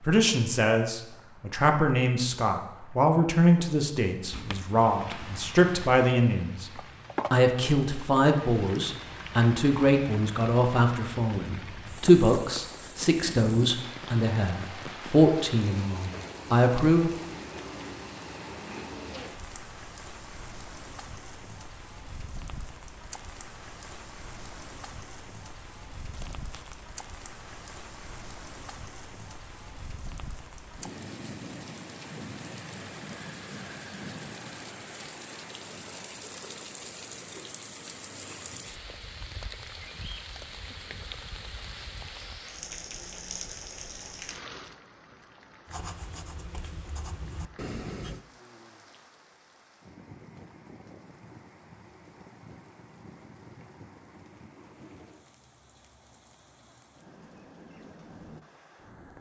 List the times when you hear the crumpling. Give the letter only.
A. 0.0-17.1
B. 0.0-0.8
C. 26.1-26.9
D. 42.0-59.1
C.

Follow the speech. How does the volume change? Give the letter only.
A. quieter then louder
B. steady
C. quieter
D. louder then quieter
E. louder
B.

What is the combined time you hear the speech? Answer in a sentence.
You can hear the speech for 17 seconds altogether.